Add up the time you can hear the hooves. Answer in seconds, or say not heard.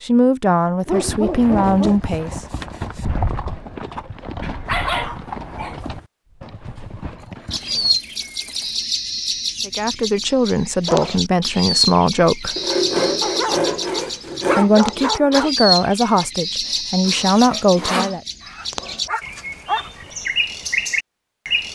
7 s.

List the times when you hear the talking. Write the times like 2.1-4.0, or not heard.
0.0-2.4, 9.7-12.6, 14.6-18.2.